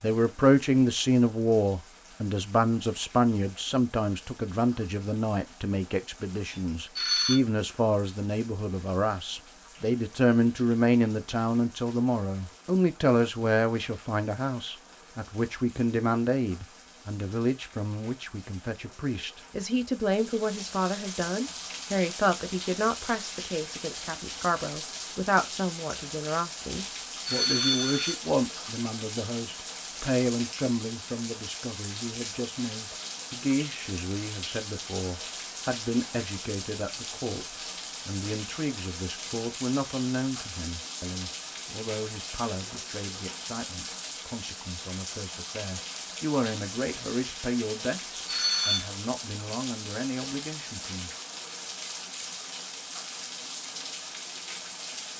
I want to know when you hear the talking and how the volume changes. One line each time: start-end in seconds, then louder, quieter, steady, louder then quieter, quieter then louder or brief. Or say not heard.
0.0-51.1 quieter.